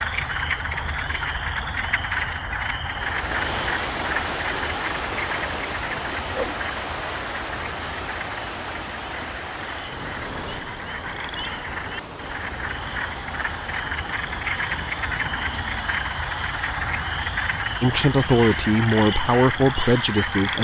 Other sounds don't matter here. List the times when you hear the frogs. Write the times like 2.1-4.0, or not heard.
0.0-20.6.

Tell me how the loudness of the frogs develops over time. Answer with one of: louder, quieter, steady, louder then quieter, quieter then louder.
quieter then louder.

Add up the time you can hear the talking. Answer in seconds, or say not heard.
3 s.